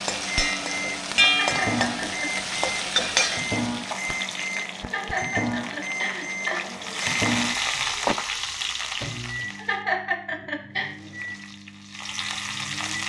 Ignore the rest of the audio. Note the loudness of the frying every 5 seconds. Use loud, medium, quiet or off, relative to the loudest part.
loud, loud, medium.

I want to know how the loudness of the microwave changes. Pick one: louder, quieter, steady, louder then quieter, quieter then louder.
quieter.